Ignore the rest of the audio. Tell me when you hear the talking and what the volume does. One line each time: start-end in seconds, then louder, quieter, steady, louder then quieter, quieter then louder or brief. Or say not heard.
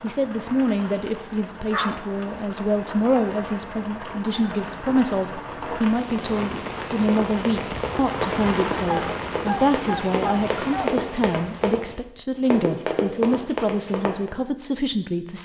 0.0-15.4 steady.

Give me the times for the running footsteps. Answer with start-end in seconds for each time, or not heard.
7.0-14.3.